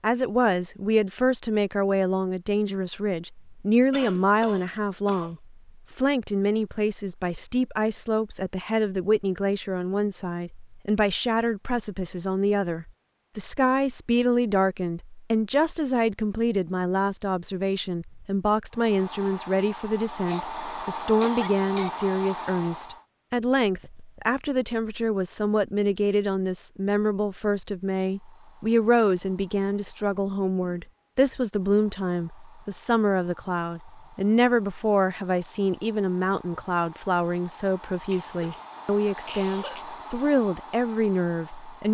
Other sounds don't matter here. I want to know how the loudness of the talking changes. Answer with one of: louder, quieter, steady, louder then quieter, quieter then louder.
steady.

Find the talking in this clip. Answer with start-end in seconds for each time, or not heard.
0.0-41.8.